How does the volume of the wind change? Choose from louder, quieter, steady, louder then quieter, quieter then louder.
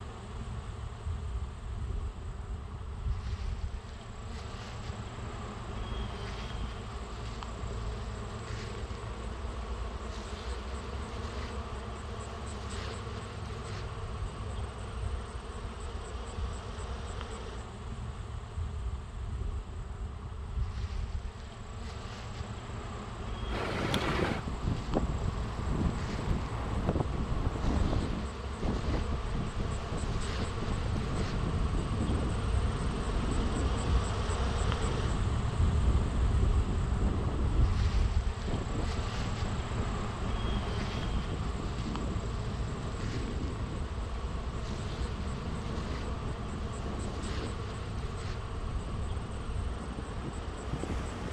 quieter.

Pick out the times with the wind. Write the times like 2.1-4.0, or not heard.
23.4-51.2.